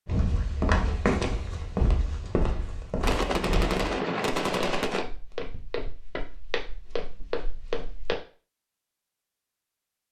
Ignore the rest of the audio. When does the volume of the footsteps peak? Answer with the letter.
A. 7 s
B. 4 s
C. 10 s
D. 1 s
D.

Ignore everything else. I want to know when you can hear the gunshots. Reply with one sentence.
The gunshots can be heard from 3.0 to 5.0 s.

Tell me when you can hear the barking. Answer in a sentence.
The barking can't be heard in this clip.